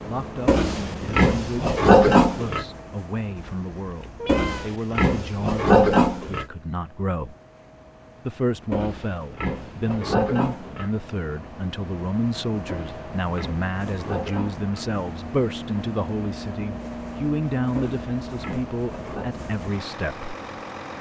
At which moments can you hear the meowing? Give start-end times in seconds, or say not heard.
3.5-4.7.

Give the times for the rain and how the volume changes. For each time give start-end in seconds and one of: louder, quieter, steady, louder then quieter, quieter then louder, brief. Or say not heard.
not heard.